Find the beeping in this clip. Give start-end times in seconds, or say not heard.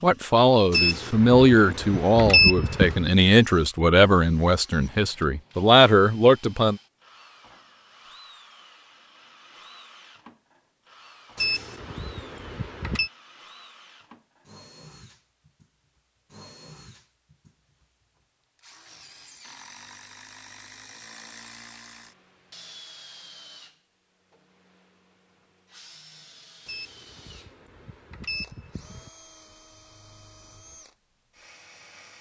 0.7-3.0, 11.3-13.1, 26.6-29.1.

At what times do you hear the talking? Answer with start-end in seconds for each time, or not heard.
0.0-6.8.